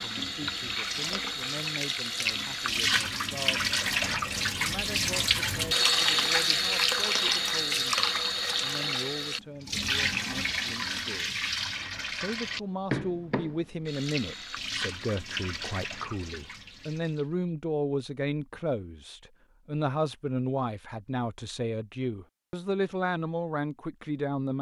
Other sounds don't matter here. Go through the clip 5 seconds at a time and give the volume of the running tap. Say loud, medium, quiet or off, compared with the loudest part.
loud, loud, medium, quiet, off.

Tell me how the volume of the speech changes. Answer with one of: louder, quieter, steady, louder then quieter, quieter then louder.
louder.